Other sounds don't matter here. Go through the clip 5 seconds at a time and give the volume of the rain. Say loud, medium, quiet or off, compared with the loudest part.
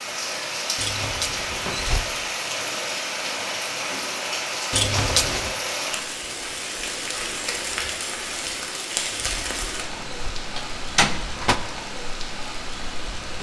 loud, loud, medium.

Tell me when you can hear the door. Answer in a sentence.
The door can be heard from 0.8 to 2.0 s, from 4.7 to 5.5 s and from 9.1 to 11.6 s.